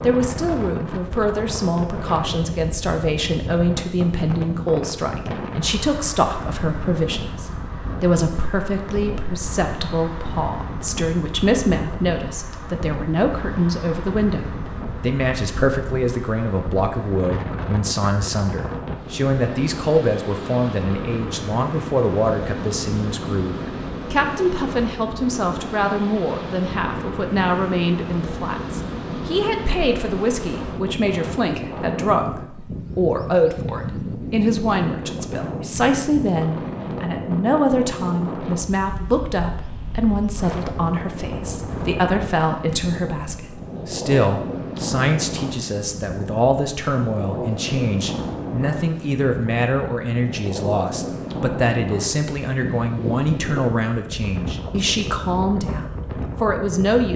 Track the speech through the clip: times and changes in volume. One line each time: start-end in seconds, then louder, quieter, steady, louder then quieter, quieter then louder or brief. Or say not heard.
0.0-57.1 steady.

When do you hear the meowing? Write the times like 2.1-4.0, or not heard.
not heard.